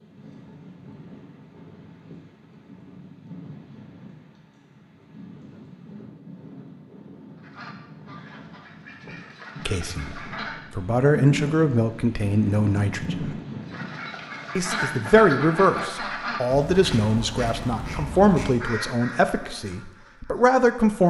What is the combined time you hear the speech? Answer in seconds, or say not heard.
10 s.